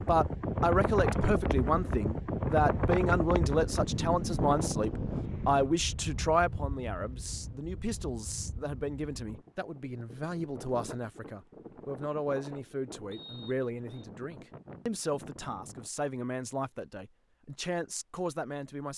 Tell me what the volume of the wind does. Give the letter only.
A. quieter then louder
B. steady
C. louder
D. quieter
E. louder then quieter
D.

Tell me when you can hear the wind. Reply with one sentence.
You can hear the wind from 0.0 to 15.9 s.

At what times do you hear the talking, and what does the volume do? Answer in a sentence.
You can hear the talking from 0.1 to 18.9 s, getting quieter.